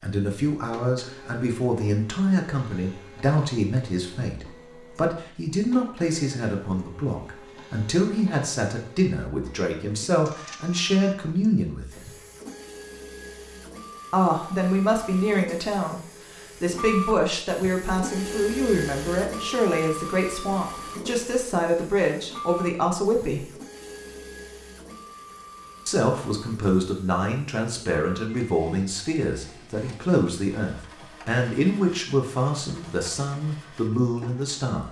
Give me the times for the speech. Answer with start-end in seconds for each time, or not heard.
0.0-12.1, 14.1-23.5, 25.9-34.8.